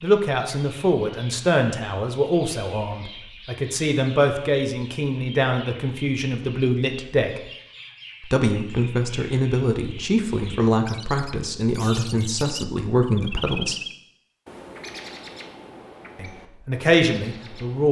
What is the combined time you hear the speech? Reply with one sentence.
The speech can be heard for 15 seconds in total.